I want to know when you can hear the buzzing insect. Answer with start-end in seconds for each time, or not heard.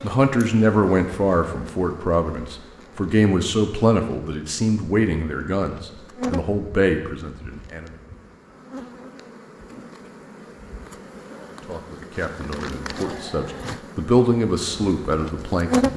0.0-15.9.